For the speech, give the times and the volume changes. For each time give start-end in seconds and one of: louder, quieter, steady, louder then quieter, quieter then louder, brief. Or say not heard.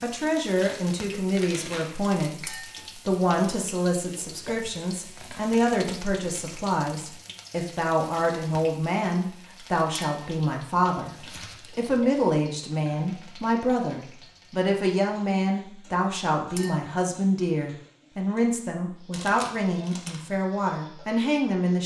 0.0-21.8 steady.